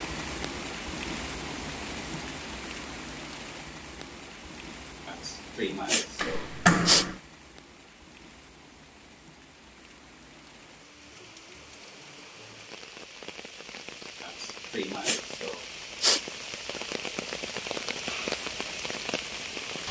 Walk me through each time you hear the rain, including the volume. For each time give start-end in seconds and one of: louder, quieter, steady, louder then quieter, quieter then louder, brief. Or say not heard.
0.0-19.8 quieter then louder.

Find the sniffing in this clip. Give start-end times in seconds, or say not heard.
5.0-7.0, 14.2-16.2.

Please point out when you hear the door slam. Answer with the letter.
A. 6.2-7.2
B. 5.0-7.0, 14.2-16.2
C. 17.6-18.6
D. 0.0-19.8
A.